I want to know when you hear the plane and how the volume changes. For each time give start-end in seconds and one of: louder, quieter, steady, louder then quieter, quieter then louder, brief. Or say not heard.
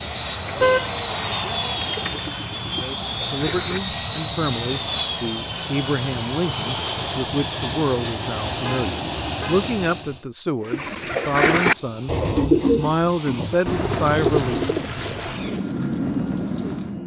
0.0-10.2 steady
11.6-17.0 louder.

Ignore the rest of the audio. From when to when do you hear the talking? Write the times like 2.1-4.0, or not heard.
2.8-14.7.